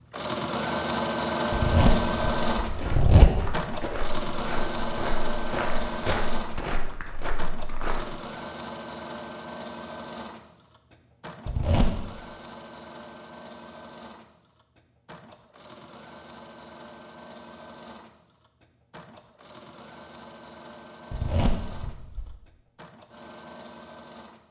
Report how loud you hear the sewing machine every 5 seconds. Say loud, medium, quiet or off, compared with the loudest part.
loud, medium, quiet, quiet, quiet.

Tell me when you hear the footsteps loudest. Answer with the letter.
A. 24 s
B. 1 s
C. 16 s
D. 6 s
D.